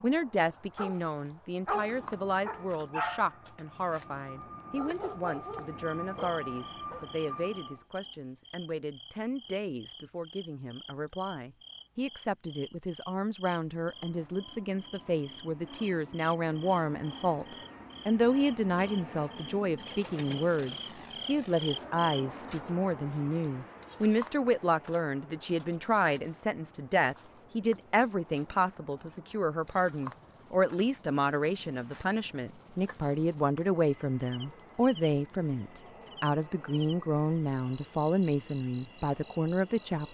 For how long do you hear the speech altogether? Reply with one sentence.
The speech can be heard for 40 seconds in total.